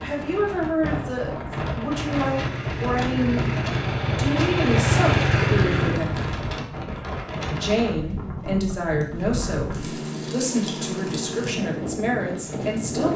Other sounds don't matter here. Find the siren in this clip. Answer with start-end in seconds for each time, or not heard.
not heard.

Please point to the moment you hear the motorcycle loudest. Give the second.
5 s.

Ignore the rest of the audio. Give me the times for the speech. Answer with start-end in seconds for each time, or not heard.
0.0-3.4, 4.0-6.3, 7.5-13.1.